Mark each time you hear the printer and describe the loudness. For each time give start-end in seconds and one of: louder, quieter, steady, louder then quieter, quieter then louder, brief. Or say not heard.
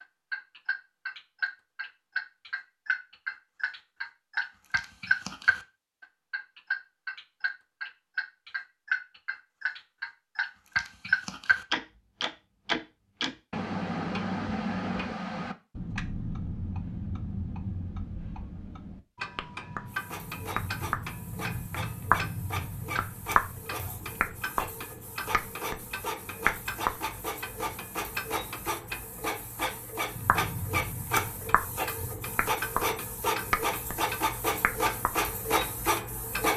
19.9-36.5 louder.